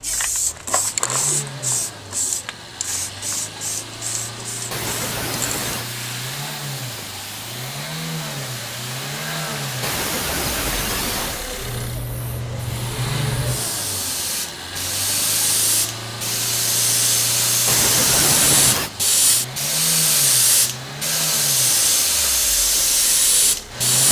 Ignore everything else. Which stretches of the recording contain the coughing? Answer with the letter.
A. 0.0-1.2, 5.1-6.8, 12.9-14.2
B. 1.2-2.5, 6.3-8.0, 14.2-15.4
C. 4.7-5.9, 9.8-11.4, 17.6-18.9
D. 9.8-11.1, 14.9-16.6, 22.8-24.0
C.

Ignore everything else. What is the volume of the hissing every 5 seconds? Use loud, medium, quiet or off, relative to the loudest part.
medium, quiet, medium, loud, loud.